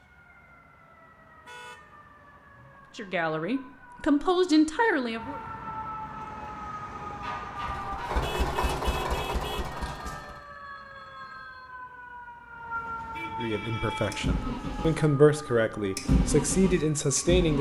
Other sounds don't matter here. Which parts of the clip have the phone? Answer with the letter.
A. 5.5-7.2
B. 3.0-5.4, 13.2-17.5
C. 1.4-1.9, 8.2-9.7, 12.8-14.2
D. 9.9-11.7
D.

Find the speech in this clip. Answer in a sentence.
The speech can be heard from 3.0 to 5.4 s and from 13.2 to 17.5 s.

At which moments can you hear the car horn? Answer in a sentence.
The car horn can be heard from 1.4 to 1.9 s, from 8.2 to 9.7 s and from 12.8 to 14.2 s.